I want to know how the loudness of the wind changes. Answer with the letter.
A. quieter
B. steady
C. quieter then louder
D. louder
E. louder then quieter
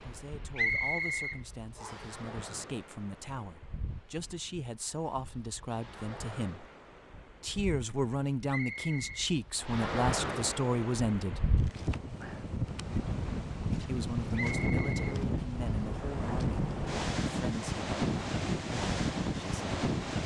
D.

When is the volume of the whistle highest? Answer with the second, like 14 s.
1 s.